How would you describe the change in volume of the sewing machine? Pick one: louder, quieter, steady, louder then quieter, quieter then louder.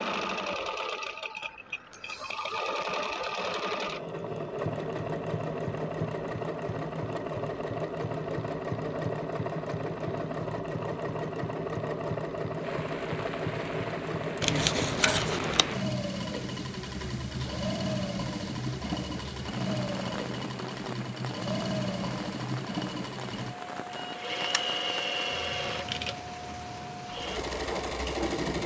steady.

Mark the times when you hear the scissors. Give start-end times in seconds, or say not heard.
14.4-15.8.